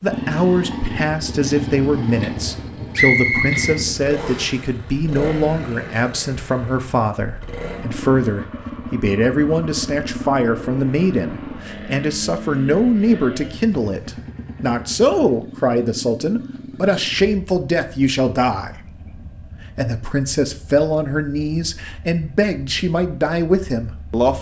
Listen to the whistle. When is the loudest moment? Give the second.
3 s.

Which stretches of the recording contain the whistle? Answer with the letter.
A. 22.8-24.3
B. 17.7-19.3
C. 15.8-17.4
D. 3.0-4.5
D.